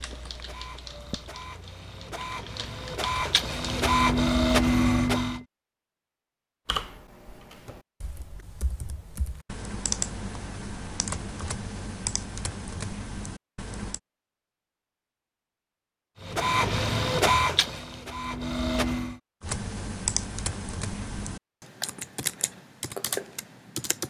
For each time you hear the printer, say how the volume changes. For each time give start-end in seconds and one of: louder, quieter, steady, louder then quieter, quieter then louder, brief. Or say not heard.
0.0-5.5 louder
16.2-19.1 brief.